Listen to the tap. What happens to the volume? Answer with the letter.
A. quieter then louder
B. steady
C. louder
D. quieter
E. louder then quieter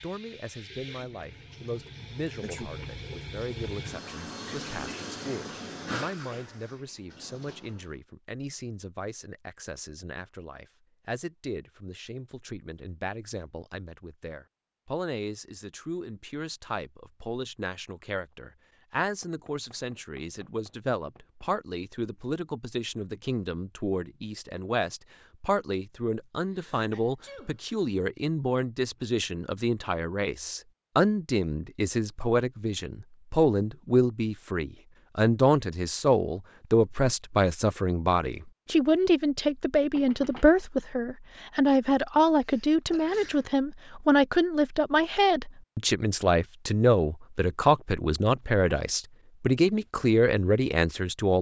E.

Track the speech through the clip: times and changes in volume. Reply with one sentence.
The speech can be heard from 0.0 to 51.3 s, getting louder.